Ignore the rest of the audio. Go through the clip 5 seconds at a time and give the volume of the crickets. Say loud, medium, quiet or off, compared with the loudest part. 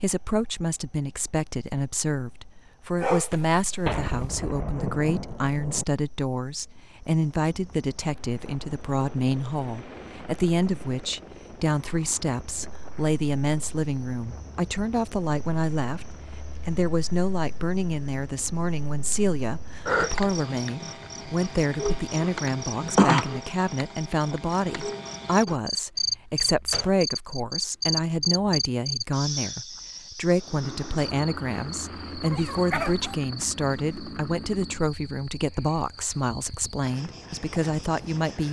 quiet, quiet, quiet, medium, loud, loud, quiet, quiet.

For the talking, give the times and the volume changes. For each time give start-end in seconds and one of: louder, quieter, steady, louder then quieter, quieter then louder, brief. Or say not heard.
0.0-38.4 steady.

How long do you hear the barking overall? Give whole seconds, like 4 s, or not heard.
2 s.